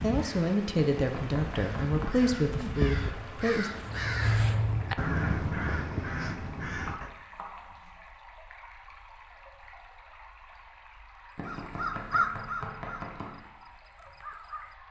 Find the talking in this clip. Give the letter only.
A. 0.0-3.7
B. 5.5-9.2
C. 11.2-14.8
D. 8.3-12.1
A.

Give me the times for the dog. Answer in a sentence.
You can't hear the dog here.